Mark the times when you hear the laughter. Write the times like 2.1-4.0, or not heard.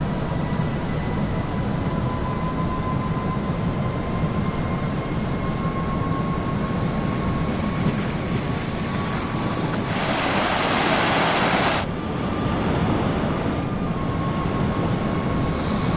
not heard.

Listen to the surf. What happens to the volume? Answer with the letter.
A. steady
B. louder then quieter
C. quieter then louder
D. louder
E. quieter
B.